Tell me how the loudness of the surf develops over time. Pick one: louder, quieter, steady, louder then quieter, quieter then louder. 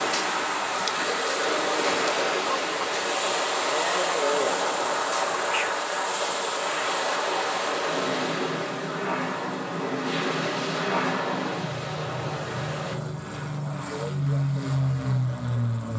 quieter.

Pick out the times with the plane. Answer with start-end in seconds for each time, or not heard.
0.1-15.9.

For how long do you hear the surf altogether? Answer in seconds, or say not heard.
13 s.